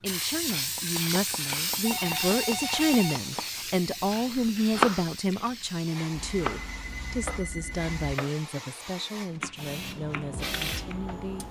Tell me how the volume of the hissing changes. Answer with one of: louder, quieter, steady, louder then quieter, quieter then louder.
quieter then louder.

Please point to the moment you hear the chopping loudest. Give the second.
5 s.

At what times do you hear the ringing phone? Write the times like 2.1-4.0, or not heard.
1.9-3.2, 6.1-8.2.